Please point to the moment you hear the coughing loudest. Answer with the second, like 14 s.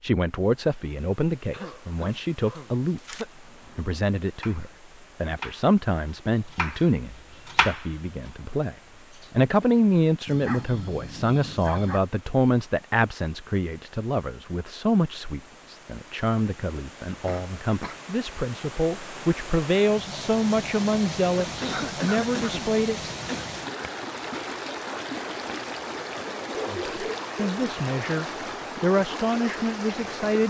22 s.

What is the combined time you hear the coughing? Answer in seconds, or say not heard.
5 s.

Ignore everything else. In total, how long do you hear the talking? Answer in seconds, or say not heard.
27 s.